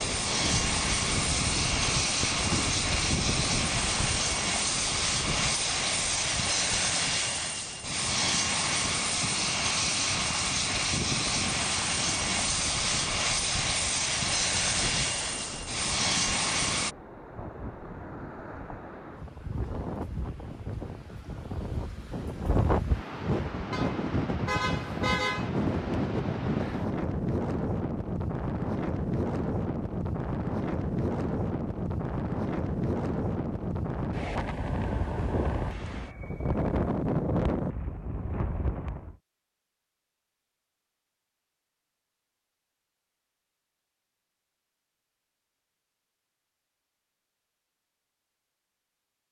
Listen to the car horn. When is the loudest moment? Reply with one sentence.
The volume of the car horn peaks at 25 seconds.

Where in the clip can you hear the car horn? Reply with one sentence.
The car horn can be heard from 23.7 to 25.5 s.